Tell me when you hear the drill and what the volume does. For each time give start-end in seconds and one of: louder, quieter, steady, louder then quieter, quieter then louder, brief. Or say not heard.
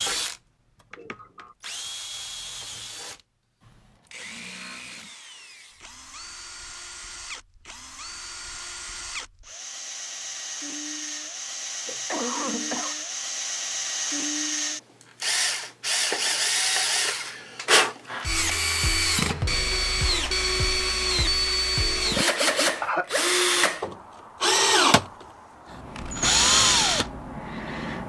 0.0-28.0 louder.